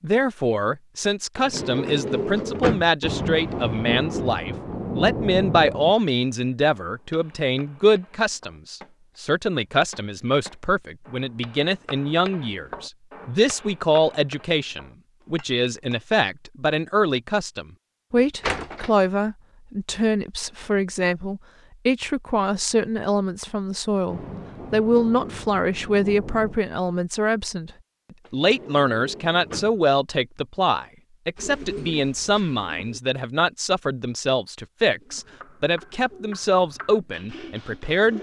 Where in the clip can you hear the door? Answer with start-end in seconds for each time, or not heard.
1.4-2.9, 18.4-18.9, 28.2-29.8.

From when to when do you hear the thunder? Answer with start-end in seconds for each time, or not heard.
3.0-6.0, 24.1-26.6.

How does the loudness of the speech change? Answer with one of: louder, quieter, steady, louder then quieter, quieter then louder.
steady.